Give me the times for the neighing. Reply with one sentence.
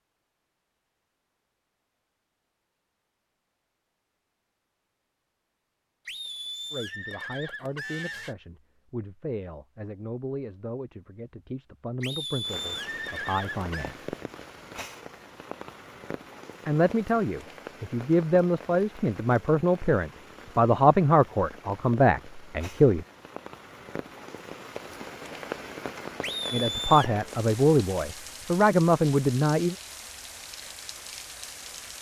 You can hear the neighing from 6.0 to 8.3 s, from 12.0 to 13.9 s and from 26.2 to 27.1 s.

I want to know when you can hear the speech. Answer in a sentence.
The speech can be heard from 6.7 to 14.1 s, from 16.6 to 23.1 s and from 26.5 to 29.8 s.